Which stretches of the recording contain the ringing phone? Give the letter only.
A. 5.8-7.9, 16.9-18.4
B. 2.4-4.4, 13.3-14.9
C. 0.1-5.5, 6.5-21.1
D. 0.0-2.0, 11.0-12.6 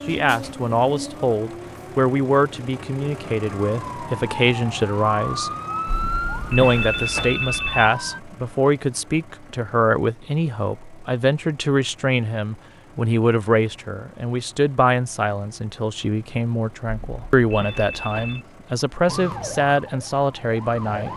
A.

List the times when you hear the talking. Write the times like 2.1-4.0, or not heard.
0.1-5.5, 6.5-21.1.